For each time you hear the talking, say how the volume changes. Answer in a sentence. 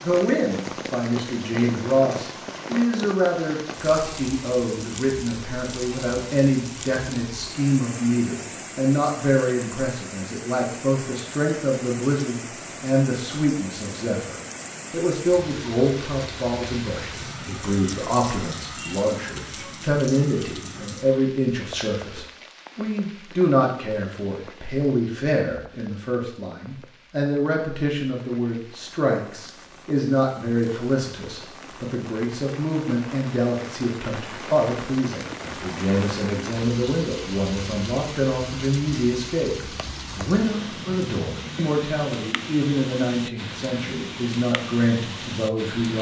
The talking can be heard from 0.0 to 45.9 s, at a steady volume.